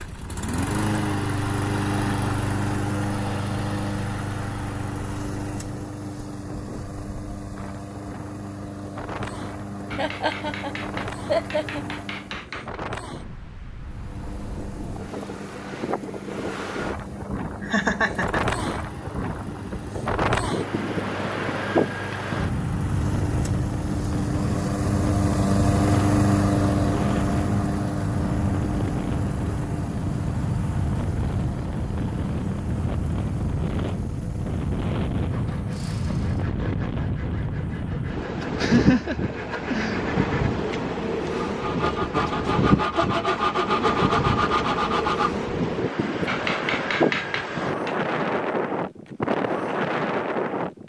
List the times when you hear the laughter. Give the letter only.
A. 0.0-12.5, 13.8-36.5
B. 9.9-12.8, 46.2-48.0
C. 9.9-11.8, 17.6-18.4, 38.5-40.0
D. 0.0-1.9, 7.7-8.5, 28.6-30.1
C.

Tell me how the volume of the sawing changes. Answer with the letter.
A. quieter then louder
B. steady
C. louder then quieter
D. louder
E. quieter
D.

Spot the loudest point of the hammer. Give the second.
47 s.